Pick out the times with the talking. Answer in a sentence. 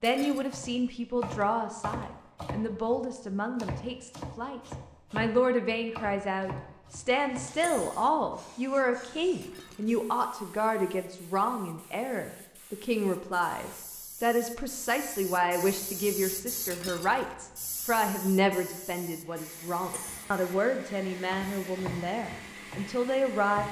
The talking can be heard from 0.0 to 23.6 s.